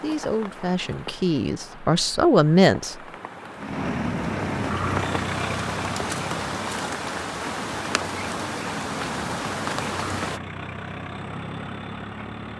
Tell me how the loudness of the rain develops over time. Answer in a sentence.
The loudness of the rain goes up.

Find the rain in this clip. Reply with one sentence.
The rain can be heard from 0.0 to 10.4 s.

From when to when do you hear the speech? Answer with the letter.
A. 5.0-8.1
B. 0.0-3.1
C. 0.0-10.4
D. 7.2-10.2
B.